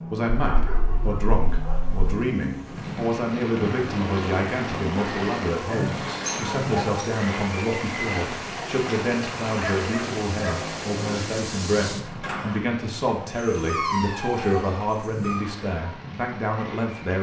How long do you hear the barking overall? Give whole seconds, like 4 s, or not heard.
6 s.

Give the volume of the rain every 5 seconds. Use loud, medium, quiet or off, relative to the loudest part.
loud, loud, medium, medium.